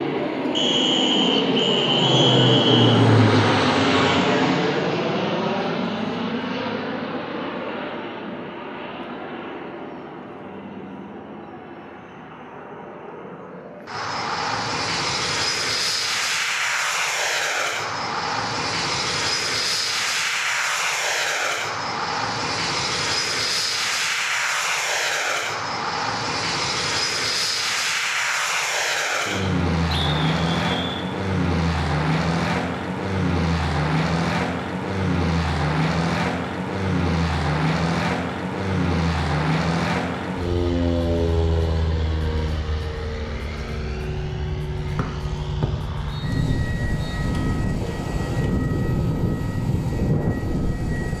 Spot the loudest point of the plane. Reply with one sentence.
The volume of the plane peaks at 3 seconds.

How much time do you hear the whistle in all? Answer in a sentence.
The whistle can be heard for 7 seconds in total.